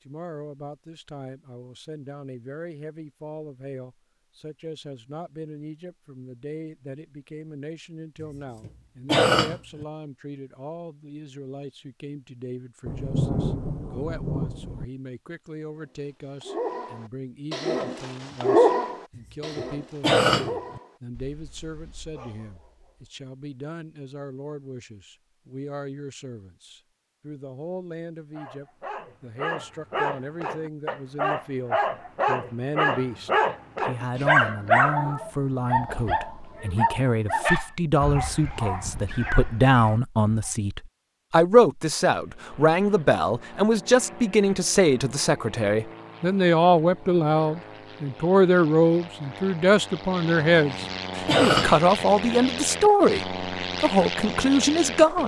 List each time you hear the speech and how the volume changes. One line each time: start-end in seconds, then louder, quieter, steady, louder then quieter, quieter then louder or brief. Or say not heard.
0.1-55.2 louder.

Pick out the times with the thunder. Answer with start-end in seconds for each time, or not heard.
12.8-14.8.